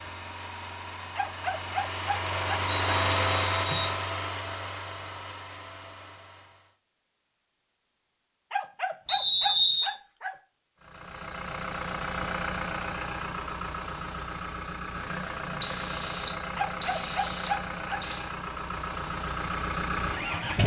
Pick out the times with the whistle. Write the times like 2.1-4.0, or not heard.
2.6-4.0, 9.1-9.9, 15.6-18.4.